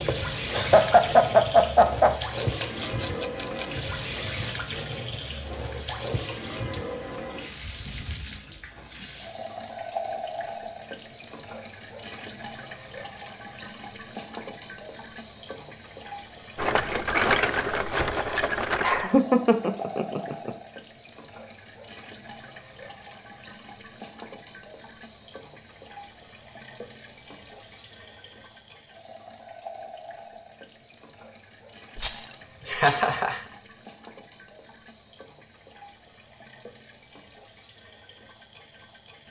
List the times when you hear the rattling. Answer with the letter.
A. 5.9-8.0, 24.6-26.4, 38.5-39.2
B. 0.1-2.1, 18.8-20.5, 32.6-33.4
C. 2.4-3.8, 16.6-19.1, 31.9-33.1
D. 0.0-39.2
C.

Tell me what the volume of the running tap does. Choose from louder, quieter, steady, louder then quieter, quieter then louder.
quieter.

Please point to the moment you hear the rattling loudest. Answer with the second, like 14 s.
17 s.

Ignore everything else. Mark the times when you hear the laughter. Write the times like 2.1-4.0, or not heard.
0.1-2.1, 18.8-20.5, 32.6-33.4.